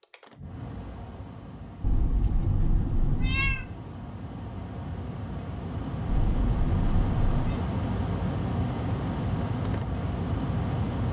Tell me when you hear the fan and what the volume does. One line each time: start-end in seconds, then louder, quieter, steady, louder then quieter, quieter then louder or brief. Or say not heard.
0.0-11.0 louder.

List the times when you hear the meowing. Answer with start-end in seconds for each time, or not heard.
1.8-3.6, 6.0-7.6.